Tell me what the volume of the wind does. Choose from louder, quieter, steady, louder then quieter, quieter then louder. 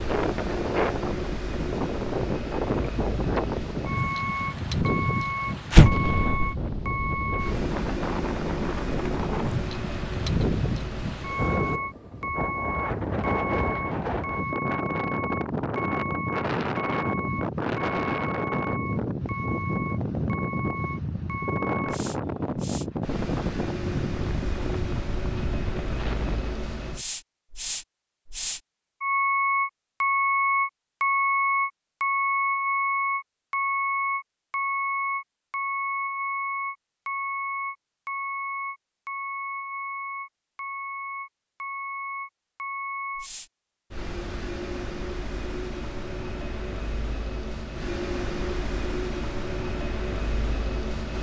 steady.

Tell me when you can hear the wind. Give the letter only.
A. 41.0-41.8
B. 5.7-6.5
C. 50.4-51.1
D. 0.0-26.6
D.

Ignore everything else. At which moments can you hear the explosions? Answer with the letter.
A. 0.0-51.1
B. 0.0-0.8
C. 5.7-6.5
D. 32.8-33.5
C.